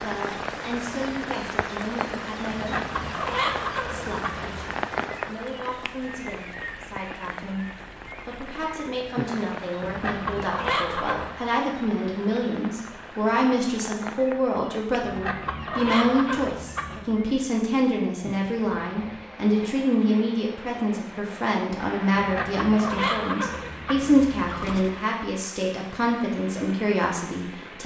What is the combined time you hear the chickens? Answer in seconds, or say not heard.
9 s.